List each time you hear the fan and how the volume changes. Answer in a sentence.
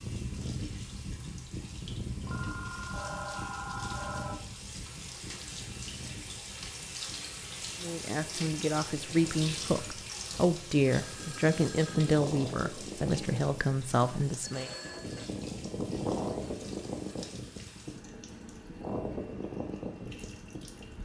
You can hear the fan from 0.0 to 20.9 s, getting quieter then louder.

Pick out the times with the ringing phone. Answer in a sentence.
The ringing phone can be heard from 2.2 to 4.5 s, from 10.8 to 12.2 s and from 14.4 to 15.3 s.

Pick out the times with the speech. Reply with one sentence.
The speech can be heard from 7.8 to 14.7 s.